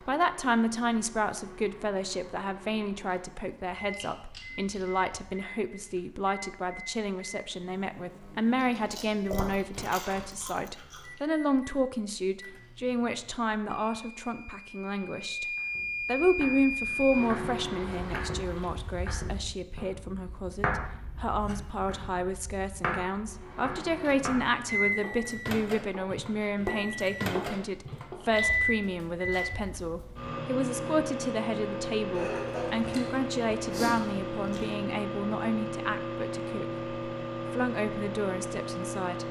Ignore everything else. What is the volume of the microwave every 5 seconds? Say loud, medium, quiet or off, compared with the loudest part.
quiet, quiet, quiet, loud, loud, loud, loud, loud.